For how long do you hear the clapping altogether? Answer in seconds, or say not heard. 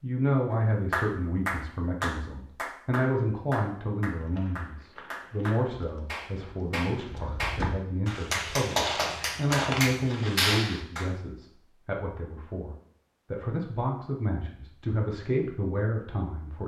10 s.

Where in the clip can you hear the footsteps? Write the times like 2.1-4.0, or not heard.
4.2-10.6.